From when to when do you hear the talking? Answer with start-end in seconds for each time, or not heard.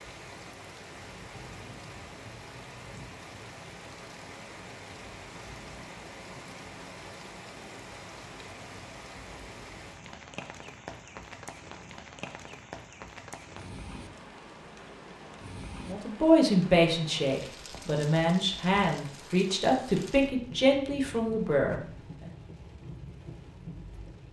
15.8-22.3.